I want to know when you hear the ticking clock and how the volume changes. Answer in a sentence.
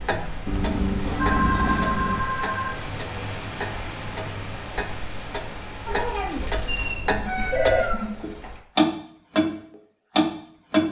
The ticking clock can be heard from 0.0 to 9.6 s, getting louder; and briefly from 10.2 to 10.8 s.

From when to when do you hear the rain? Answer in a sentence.
The rain can be heard from 0.0 to 7.0 s.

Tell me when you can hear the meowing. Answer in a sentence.
The meowing can be heard from 0.5 to 2.3 s and from 5.8 to 8.6 s.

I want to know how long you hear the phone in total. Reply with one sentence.
You can hear the phone for 3 seconds altogether.